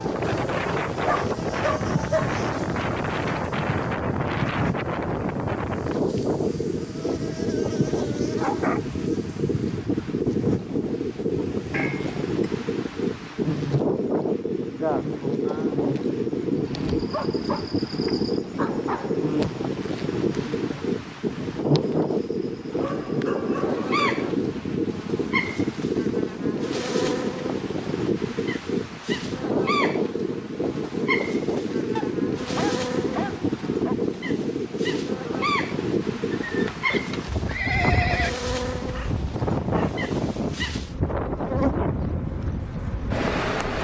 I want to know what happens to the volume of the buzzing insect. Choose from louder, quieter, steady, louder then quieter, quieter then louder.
steady.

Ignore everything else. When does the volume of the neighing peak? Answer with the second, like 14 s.
38 s.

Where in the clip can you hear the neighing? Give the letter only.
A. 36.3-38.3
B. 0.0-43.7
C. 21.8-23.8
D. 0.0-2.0
A.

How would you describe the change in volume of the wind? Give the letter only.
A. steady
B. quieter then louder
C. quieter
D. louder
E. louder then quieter
A.